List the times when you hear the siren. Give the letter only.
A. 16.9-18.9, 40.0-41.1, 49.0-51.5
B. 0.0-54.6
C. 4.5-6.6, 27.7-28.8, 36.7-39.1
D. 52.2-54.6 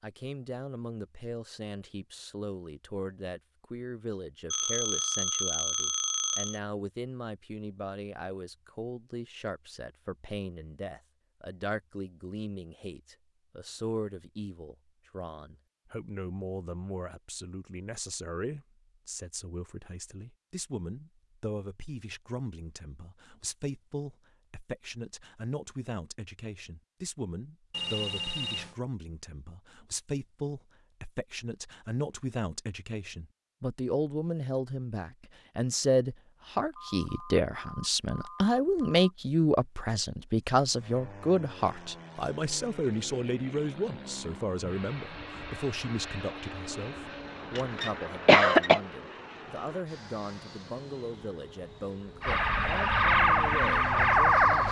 D.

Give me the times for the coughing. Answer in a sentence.
The coughing can be heard from 47.5 to 48.8 s.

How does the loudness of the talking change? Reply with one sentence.
The volume of the talking goes up, then down.